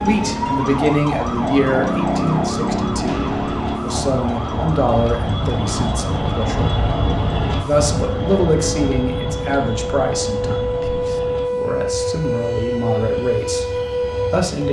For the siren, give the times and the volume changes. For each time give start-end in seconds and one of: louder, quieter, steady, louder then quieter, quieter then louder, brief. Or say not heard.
0.0-14.6 quieter then louder.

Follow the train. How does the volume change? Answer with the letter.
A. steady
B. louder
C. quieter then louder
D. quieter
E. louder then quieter
E.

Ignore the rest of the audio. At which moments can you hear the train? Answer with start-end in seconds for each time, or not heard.
0.0-14.6.